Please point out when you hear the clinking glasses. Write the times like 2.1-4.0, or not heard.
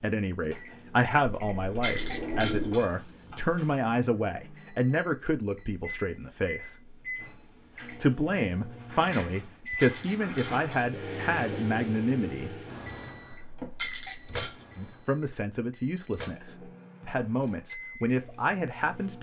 1.8-2.9, 9.8-10.9, 13.8-14.7.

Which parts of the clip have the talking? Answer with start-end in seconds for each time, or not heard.
0.0-7.0, 7.8-12.6, 14.8-19.1.